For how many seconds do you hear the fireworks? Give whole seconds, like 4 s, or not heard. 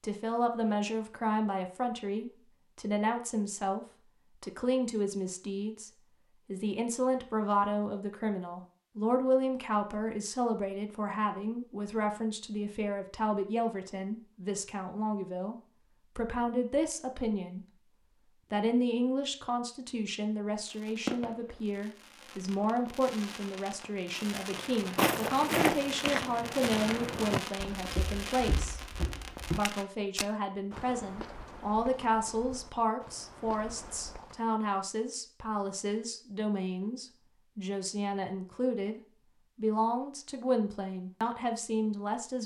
9 s.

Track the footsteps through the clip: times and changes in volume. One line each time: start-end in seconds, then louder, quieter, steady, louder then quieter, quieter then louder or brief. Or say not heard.
24.5-34.5 quieter.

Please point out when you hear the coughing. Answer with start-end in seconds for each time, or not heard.
not heard.